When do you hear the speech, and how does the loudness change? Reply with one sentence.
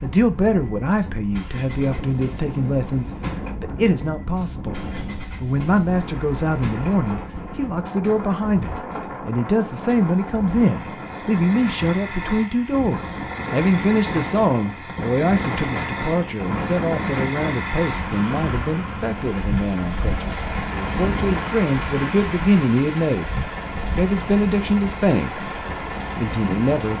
You can hear the speech from 0.0 to 23.3 s, at a steady volume; briefly from 23.9 to 25.4 s; and briefly from 26.1 to 26.9 s.